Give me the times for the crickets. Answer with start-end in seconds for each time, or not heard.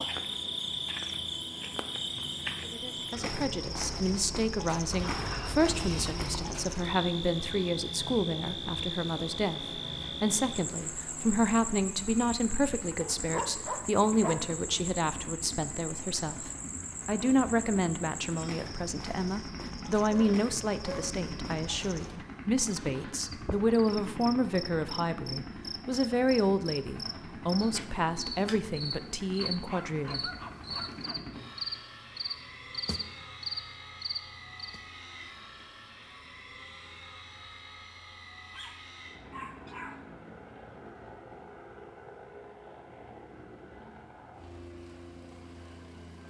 0.0-34.8.